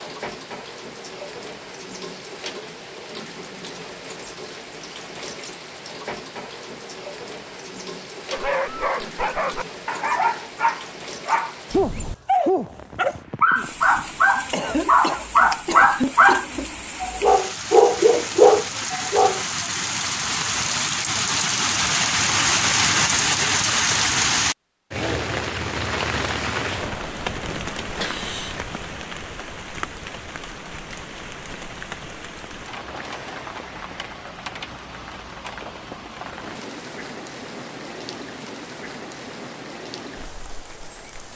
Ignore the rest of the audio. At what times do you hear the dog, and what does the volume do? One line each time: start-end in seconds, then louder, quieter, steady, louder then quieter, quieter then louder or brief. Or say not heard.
8.3-19.4 louder.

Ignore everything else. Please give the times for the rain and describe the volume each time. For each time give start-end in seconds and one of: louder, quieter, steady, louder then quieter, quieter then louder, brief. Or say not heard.
0.0-41.3 louder then quieter.